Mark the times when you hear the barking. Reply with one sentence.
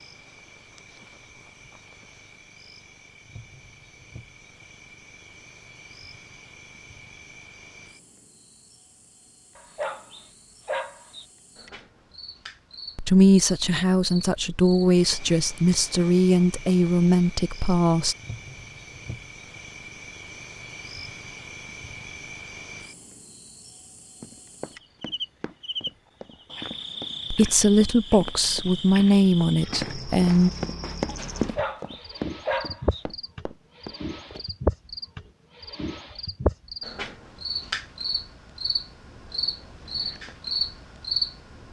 The barking can be heard from 9.6 to 11.2 s and from 31.4 to 33.0 s.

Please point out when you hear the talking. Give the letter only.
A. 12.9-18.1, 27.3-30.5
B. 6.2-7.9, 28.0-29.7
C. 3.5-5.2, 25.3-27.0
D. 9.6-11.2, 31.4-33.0
A.